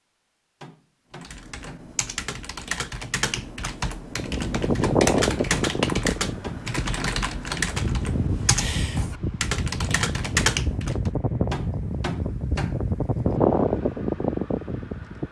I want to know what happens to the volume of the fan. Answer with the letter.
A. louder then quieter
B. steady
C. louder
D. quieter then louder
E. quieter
D.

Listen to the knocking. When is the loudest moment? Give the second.
12 s.